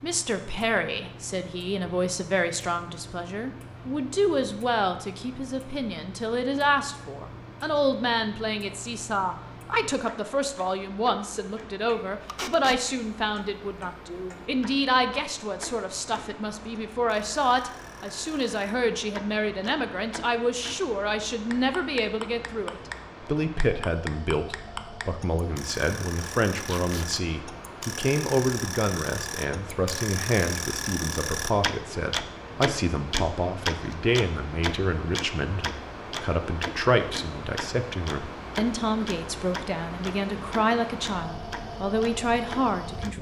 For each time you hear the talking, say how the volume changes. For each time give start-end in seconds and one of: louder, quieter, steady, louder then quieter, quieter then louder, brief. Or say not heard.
0.0-43.1 steady.